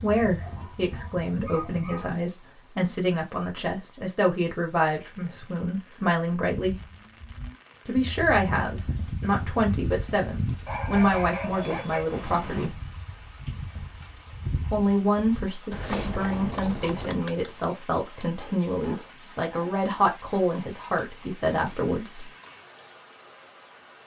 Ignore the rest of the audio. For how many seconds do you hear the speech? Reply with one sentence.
The speech can be heard for 19 seconds in total.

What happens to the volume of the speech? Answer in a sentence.
The volume of the speech stays about the same.